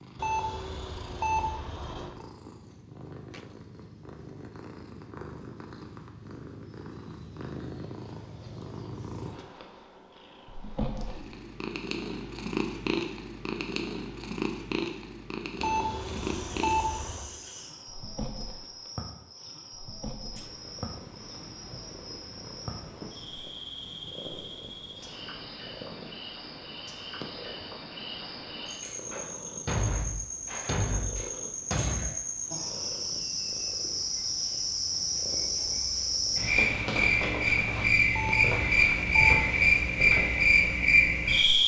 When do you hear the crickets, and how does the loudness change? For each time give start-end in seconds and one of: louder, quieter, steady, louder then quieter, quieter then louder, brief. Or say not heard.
16.0-41.6 louder.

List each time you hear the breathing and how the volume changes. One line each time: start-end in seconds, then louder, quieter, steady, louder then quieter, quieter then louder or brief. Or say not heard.
not heard.